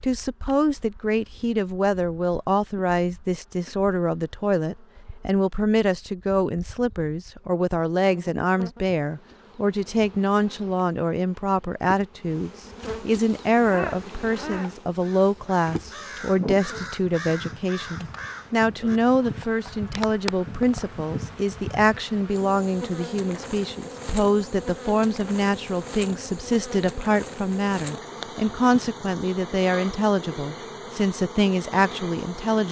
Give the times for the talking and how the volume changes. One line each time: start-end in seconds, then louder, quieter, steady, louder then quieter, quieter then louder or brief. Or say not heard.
0.0-32.6 steady.